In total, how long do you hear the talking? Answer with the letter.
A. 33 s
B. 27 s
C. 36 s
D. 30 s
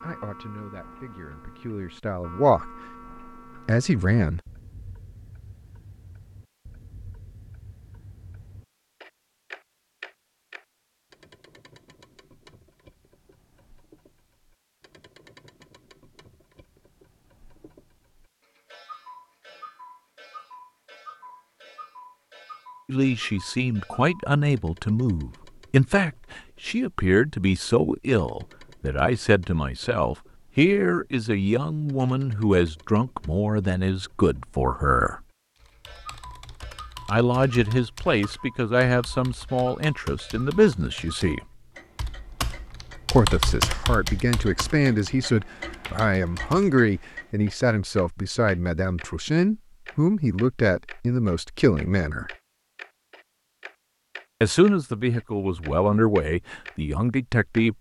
A.